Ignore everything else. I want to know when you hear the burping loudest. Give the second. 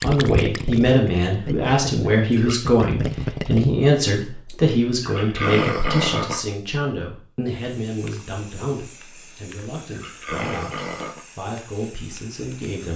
6 s.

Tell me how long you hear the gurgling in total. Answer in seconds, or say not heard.
4 s.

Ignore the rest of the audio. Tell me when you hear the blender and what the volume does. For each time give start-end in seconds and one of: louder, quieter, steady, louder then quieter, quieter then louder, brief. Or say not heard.
not heard.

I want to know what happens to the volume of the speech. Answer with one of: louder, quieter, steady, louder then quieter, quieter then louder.
quieter.